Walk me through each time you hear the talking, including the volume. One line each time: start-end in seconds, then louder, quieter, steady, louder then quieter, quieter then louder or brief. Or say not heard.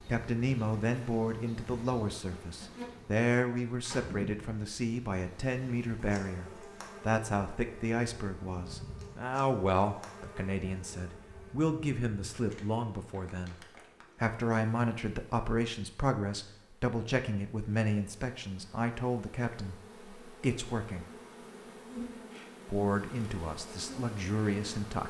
0.1-13.6 steady
14.2-19.8 steady
20.4-21.1 brief
22.6-25.0 brief.